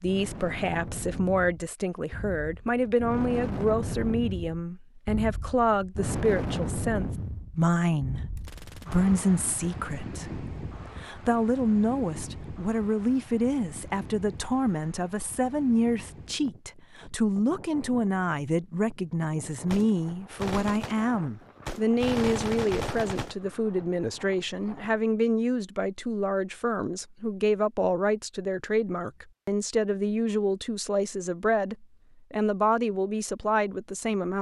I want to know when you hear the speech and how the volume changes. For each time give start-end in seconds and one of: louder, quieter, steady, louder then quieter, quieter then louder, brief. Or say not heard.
0.0-34.3 steady.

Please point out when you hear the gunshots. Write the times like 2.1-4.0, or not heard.
8.3-9.1, 19.6-23.4.